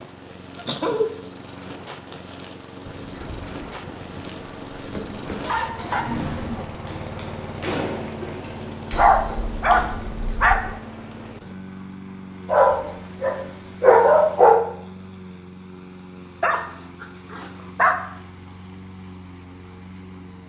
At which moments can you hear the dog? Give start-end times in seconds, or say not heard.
0.6-1.1, 1.7-2.5, 5.4-6.7, 8.9-10.8, 12.5-14.6, 16.4-17.9.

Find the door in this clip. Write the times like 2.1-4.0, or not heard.
not heard.